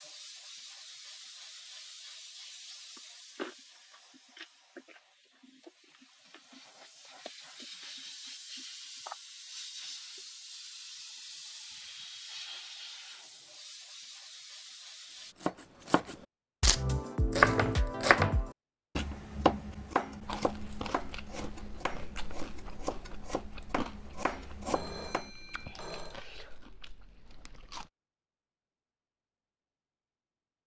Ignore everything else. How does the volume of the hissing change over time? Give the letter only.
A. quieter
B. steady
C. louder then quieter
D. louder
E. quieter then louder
E.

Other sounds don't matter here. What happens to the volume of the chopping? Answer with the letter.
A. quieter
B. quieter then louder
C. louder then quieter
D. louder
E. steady
A.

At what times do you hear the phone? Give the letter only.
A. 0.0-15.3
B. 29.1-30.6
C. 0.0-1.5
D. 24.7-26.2
D.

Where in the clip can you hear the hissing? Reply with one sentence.
The hissing can be heard from 0.0 to 15.3 s.